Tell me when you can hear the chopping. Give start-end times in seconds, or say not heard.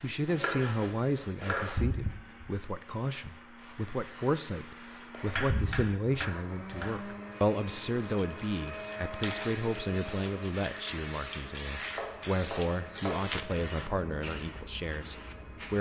0.3-1.9, 5.3-6.9, 11.9-13.2.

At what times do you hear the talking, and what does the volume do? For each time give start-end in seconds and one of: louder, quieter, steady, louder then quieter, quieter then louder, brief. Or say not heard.
0.0-15.7 steady.